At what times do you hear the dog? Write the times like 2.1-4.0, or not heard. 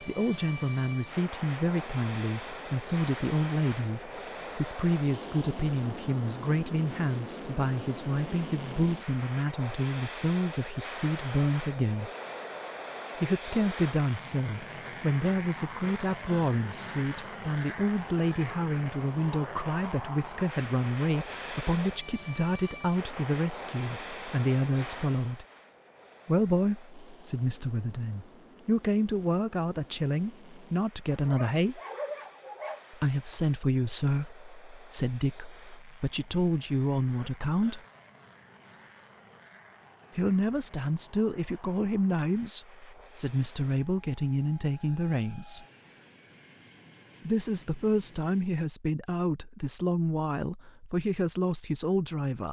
31.1-32.8.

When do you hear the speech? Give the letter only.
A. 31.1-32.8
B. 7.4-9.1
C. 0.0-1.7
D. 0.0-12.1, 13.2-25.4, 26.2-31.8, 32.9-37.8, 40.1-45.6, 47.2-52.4
D.